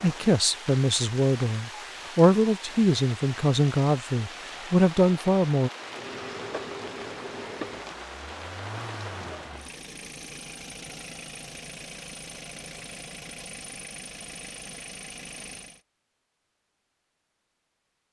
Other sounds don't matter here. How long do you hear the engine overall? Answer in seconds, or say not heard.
10 s.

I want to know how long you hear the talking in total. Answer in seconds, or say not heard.
6 s.